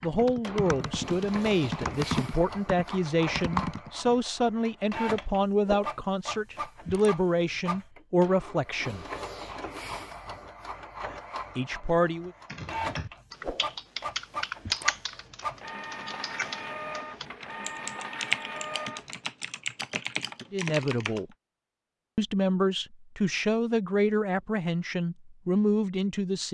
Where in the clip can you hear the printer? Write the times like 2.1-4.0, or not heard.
0.0-19.2.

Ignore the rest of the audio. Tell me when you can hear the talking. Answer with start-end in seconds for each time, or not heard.
0.0-9.1, 11.6-12.3, 20.5-21.2, 22.1-26.4.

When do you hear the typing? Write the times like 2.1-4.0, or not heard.
0.0-4.2, 12.4-21.2.